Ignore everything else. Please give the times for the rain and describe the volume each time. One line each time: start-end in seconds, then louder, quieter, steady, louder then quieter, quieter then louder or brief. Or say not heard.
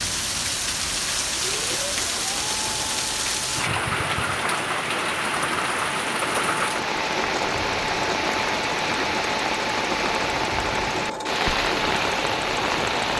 0.0-13.1 steady.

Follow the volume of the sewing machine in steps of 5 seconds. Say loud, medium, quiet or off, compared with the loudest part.
medium, loud, loud.